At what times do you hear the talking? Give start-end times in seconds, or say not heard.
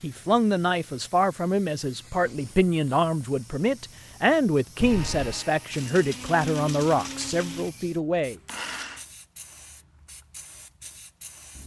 0.0-8.3.